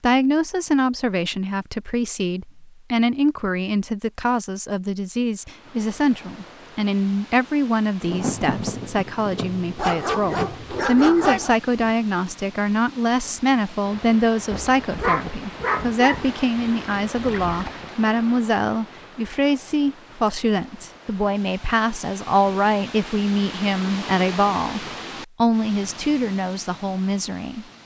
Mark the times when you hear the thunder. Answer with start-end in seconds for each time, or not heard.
8.0-11.9, 14.5-16.0.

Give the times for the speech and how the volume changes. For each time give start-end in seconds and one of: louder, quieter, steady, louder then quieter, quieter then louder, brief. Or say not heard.
0.0-27.6 steady.